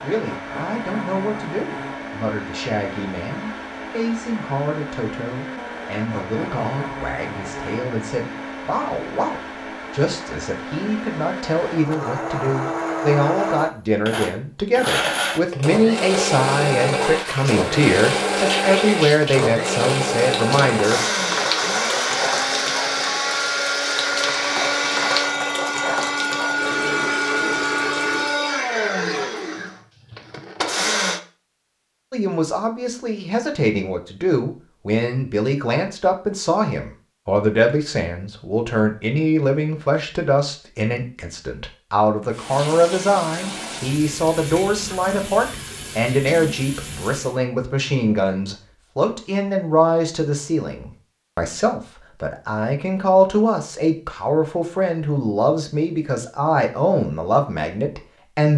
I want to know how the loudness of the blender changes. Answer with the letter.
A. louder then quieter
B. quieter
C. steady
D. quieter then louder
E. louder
E.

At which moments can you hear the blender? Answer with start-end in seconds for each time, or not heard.
0.0-31.2.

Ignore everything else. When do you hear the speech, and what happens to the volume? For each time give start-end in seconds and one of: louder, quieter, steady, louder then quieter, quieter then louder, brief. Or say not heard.
0.0-21.0 louder
32.1-58.5 steady.